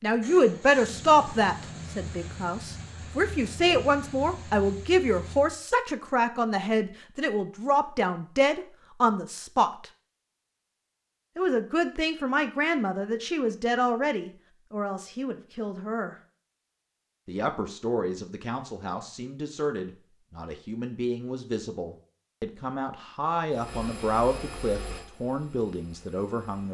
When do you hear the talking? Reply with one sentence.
You can hear the talking from 0.0 to 9.8 s, from 11.3 to 16.1 s and from 17.2 to 26.6 s.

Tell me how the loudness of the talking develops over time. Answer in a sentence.
The loudness of the talking goes down.